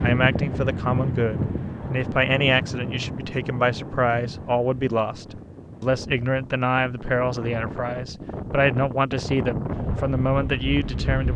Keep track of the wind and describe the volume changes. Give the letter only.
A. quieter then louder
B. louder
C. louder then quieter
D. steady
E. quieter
A.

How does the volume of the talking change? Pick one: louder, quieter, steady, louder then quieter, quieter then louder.
steady.